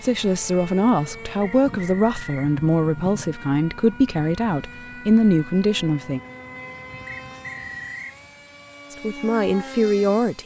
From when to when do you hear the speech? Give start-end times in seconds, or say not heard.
0.0-6.2, 8.9-10.4.